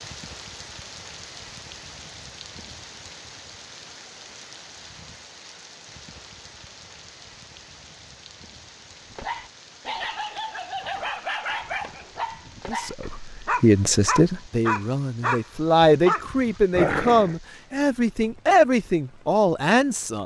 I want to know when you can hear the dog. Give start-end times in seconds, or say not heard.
9.1-17.4.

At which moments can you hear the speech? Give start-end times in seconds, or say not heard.
12.7-20.2.